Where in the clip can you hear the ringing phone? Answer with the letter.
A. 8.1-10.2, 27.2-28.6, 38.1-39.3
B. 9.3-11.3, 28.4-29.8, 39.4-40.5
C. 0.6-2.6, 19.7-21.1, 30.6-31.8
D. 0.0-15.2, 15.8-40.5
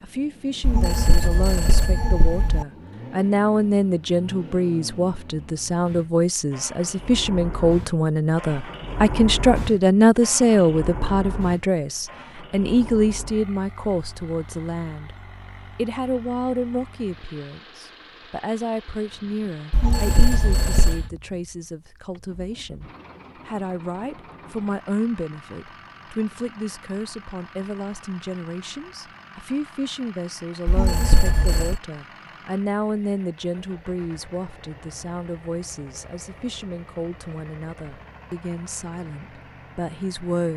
C.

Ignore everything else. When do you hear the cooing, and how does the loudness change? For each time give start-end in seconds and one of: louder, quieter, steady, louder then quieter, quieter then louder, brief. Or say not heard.
not heard.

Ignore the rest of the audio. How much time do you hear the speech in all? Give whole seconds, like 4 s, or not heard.
40 s.